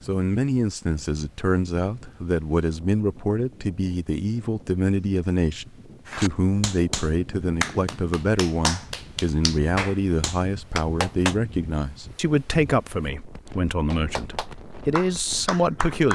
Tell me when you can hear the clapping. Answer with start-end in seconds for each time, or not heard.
6.0-11.3, 13.9-16.1.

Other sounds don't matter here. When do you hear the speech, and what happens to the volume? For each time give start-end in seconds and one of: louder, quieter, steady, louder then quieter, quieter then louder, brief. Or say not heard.
0.1-16.1 steady.